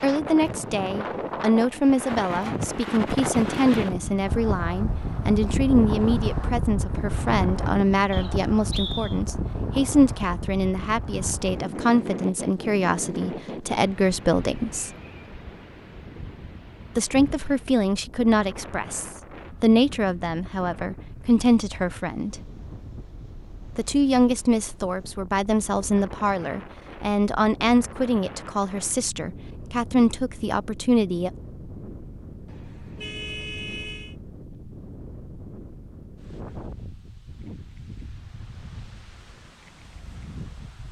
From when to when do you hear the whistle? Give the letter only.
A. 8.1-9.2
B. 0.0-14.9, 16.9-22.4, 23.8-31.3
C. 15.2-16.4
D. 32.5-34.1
A.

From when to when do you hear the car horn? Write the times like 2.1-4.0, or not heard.
32.5-34.1.